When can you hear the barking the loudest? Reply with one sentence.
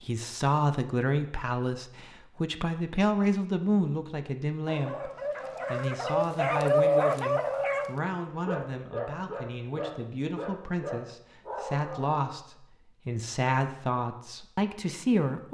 The volume of the barking peaks at 7 seconds.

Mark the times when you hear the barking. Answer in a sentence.
The barking can be heard from 4.7 to 12.2 s.